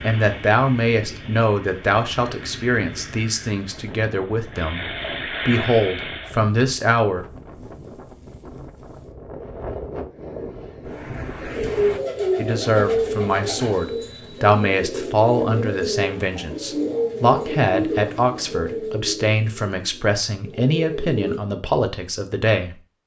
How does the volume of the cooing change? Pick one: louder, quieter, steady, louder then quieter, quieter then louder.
quieter.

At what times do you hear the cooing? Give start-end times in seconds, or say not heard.
11.6-21.4.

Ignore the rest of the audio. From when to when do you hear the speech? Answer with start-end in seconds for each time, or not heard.
0.0-4.8, 5.5-7.2, 12.3-22.8.